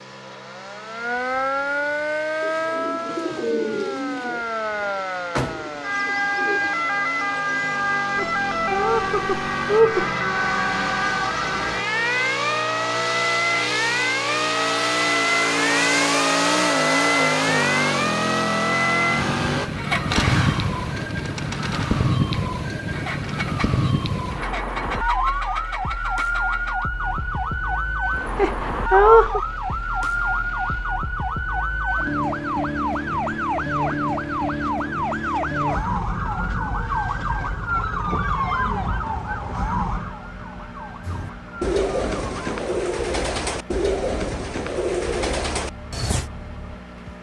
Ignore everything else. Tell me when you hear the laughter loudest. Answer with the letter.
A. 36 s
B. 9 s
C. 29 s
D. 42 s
C.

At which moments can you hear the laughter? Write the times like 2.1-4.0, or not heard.
8.2-10.1, 28.4-29.4.